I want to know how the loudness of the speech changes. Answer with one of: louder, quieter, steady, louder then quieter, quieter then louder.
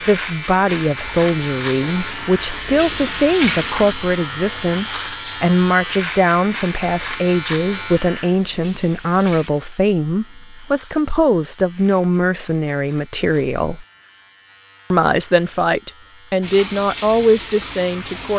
steady.